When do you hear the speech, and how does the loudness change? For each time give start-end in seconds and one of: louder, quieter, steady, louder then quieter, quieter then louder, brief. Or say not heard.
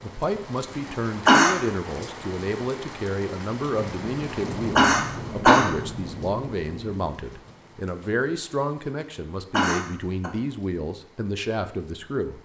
0.0-12.4 steady.